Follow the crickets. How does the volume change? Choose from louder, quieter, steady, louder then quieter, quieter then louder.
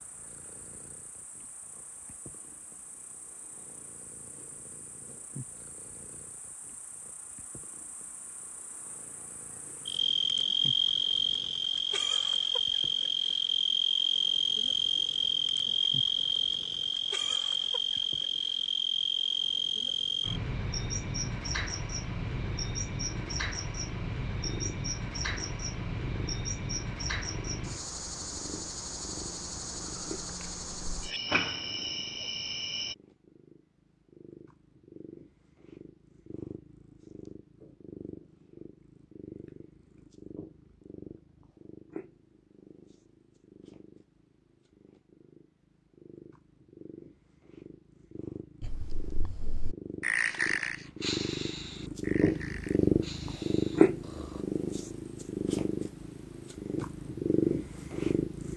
louder then quieter.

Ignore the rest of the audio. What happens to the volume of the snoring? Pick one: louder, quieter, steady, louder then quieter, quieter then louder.
louder then quieter.